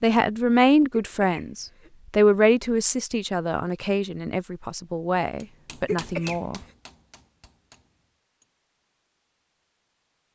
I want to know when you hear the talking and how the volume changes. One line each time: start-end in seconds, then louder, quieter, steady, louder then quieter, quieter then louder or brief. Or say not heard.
0.0-6.6 quieter.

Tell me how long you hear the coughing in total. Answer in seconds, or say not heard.
2 s.